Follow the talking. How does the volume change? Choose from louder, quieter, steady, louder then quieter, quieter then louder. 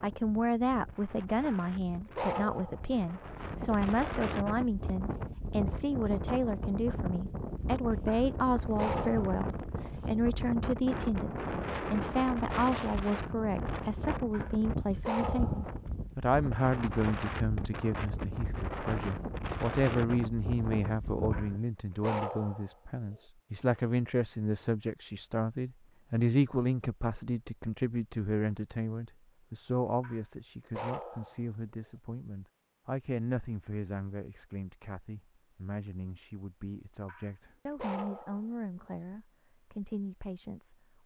quieter.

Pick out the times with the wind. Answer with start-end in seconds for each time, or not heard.
0.0-21.6.